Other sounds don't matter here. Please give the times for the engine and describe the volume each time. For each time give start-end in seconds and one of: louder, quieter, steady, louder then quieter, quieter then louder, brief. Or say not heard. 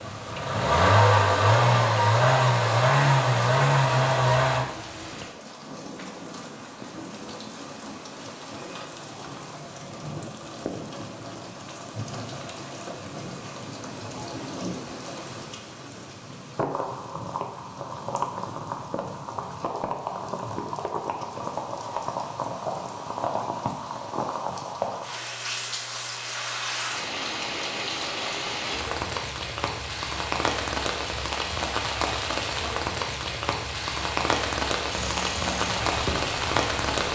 0.0-4.7 steady
34.9-37.0 brief.